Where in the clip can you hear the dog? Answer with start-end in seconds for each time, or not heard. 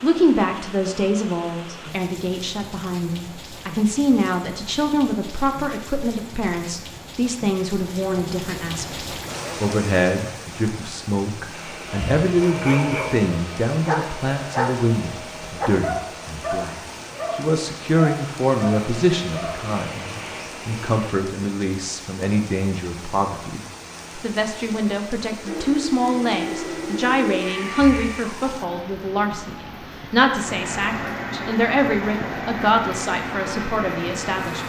12.4-19.6.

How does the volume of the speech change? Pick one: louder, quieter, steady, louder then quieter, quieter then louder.
steady.